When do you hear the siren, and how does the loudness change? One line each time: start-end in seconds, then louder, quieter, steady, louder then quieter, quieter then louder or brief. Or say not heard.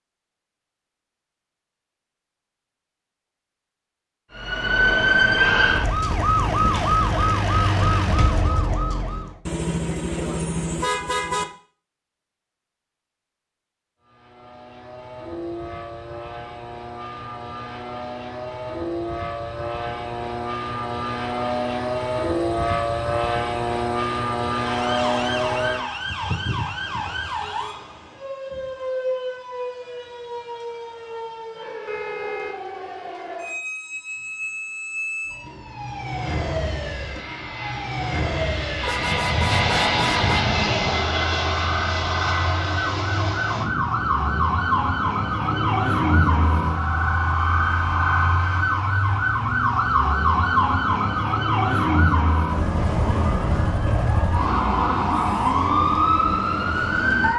4.3-9.3 quieter
24.6-57.3 louder.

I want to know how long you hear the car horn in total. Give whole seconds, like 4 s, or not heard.
4 s.